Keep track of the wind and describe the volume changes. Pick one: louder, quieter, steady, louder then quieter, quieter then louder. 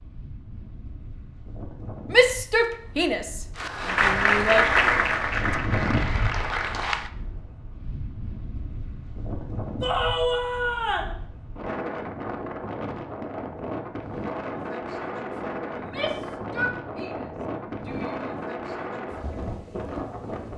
louder.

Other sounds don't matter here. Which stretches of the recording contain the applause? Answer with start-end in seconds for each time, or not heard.
3.5-7.1.